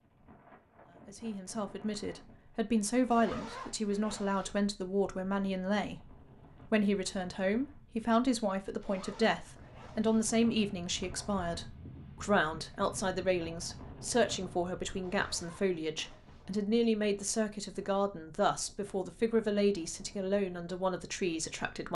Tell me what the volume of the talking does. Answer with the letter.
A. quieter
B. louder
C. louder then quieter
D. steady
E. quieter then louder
D.